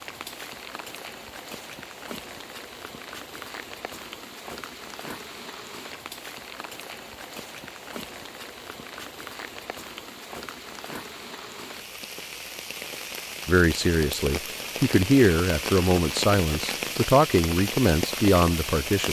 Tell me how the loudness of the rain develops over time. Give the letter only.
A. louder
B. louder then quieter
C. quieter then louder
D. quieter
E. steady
A.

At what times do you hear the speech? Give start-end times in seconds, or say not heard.
13.4-19.0.